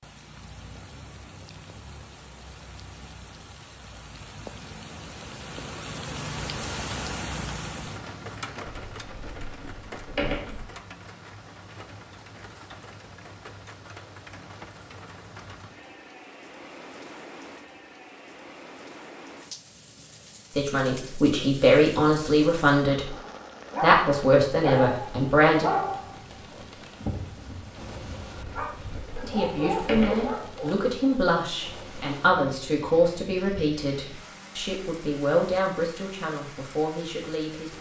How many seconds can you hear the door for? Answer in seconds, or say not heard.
4 s.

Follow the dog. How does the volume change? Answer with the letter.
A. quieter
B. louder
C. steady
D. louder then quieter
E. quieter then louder
E.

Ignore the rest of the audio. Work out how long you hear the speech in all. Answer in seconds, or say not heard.
13 s.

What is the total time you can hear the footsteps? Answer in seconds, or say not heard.
not heard.